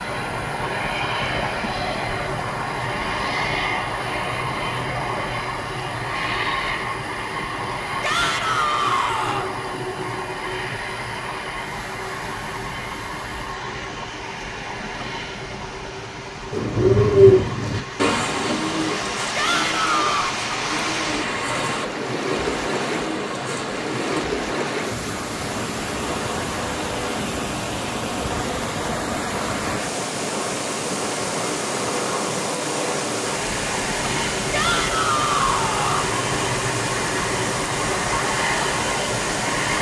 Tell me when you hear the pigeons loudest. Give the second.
17 s.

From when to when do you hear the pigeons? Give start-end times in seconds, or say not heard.
16.5-24.2.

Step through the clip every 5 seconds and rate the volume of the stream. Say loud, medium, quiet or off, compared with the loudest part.
quiet, quiet, quiet, medium, loud, loud, loud, loud.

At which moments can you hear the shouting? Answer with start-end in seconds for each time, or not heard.
8.0-9.5, 19.4-20.4, 34.5-36.1.